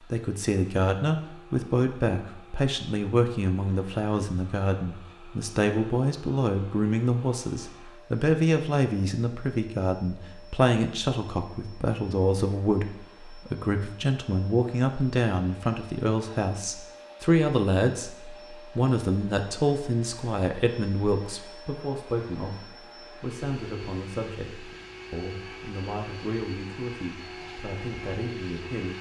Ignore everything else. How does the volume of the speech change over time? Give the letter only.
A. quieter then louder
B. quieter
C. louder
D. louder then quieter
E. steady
B.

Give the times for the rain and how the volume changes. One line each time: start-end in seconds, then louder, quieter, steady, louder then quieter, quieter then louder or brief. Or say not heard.
not heard.